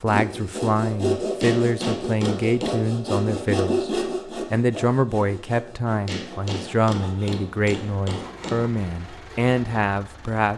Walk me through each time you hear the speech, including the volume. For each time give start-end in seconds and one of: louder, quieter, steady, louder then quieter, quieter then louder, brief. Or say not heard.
0.0-10.5 steady.